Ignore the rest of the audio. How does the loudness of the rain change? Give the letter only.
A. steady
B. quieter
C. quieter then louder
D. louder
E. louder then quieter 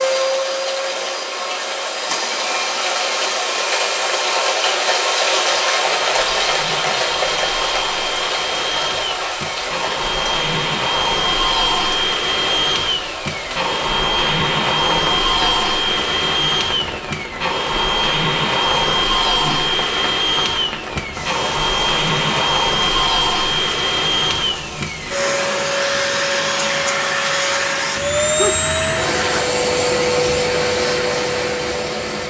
B.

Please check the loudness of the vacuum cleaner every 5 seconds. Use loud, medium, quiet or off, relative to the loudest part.
medium, medium, loud, loud, loud, loud, loud.